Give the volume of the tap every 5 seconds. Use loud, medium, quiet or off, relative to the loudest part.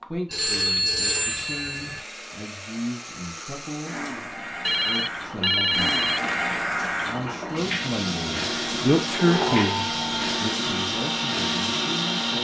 medium, loud, loud.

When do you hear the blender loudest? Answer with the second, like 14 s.
12 s.